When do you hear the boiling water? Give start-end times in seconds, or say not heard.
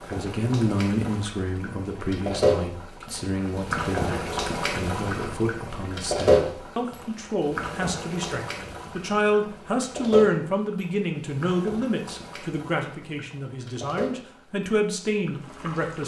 0.0-16.0.